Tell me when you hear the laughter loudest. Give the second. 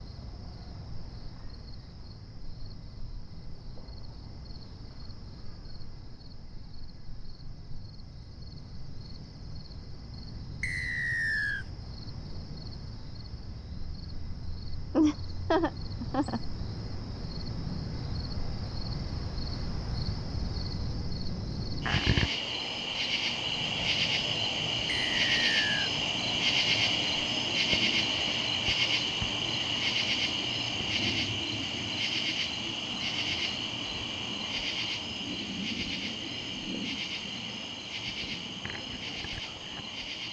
15 s.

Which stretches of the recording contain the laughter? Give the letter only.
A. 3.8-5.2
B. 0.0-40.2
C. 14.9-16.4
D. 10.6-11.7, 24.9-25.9
C.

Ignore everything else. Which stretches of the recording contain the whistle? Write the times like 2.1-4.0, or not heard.
10.6-11.7, 24.9-25.9.